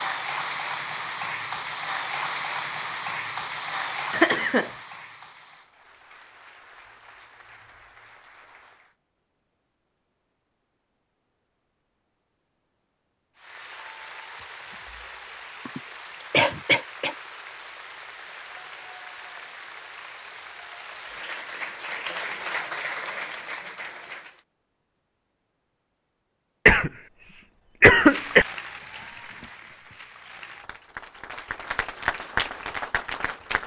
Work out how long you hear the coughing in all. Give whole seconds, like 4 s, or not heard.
4 s.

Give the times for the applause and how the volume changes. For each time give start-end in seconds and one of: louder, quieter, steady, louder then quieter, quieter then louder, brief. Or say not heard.
0.0-8.9 quieter
13.3-24.4 louder
27.9-33.6 quieter then louder.